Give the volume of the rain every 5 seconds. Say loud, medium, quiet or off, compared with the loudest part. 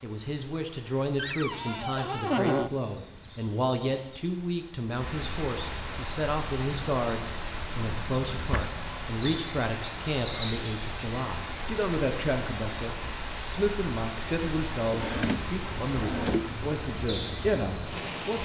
quiet, loud, loud, loud.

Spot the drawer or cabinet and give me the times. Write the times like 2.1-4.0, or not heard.
1.1-2.7, 7.8-8.7, 14.9-16.5.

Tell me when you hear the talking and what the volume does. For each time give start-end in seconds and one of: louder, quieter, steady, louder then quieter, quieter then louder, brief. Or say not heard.
0.0-18.4 steady.